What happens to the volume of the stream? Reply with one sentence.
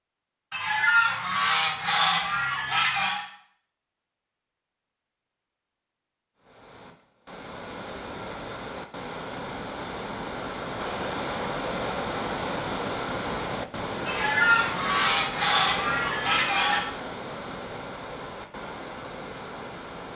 The volume of the stream goes up, then down.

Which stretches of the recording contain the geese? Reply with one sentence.
The geese can be heard from 0.5 to 3.2 s and from 14.1 to 16.8 s.